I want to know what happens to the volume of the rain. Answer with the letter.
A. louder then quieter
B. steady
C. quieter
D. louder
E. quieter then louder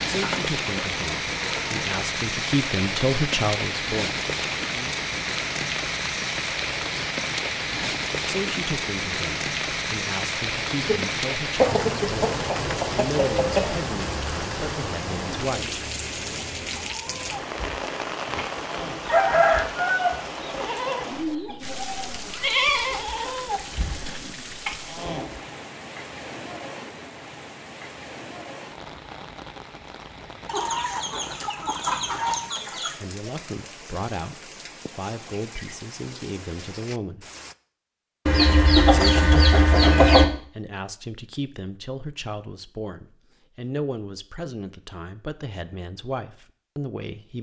C.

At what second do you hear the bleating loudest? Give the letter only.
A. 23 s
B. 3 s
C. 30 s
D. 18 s
A.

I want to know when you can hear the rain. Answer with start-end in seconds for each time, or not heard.
0.0-37.5.